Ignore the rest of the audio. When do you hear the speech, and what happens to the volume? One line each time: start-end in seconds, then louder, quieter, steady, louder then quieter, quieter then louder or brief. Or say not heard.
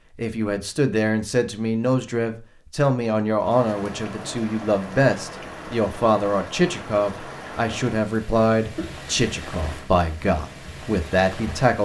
0.1-11.8 steady.